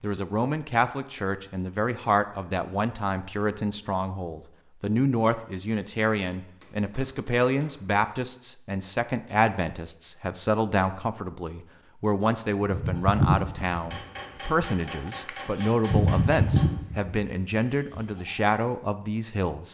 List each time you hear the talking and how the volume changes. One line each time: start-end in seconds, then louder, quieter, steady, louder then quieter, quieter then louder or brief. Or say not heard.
0.0-19.6 steady.